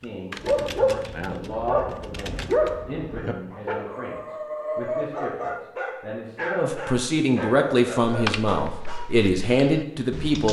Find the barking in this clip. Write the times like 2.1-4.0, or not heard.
0.4-9.1.